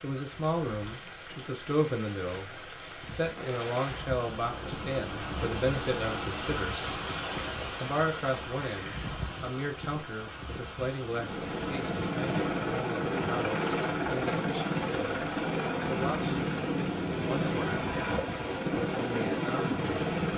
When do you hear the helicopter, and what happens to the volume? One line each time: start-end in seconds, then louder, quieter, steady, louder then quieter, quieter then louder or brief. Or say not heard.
4.3-6.5 brief
11.1-20.3 steady.